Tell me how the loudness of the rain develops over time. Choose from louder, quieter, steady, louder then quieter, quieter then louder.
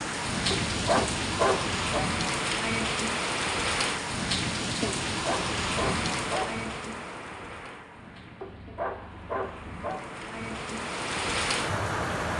quieter then louder.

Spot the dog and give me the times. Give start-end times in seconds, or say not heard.
0.5-2.0, 5.1-6.5, 8.4-10.0.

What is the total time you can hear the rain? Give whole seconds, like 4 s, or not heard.
12 s.